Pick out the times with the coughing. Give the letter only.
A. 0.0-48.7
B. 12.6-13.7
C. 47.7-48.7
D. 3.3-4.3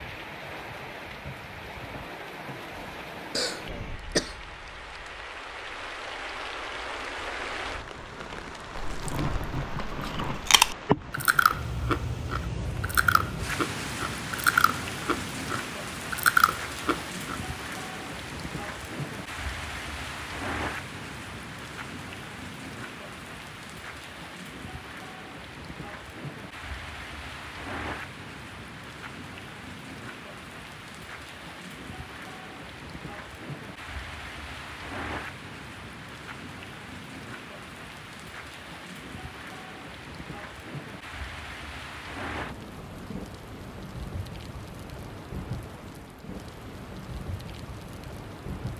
D.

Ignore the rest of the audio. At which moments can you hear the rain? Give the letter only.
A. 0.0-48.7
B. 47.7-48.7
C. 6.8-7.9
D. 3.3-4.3
A.